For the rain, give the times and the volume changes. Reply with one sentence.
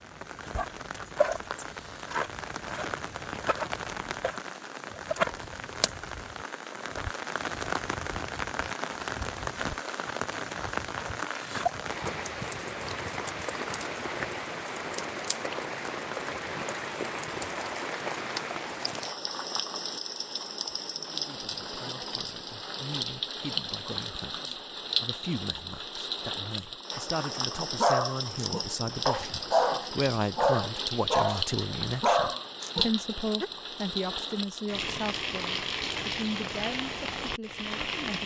You can hear the rain from 0.0 to 38.2 s, at a steady volume.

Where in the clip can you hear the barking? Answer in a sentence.
You can hear the barking from 27.8 to 33.5 s.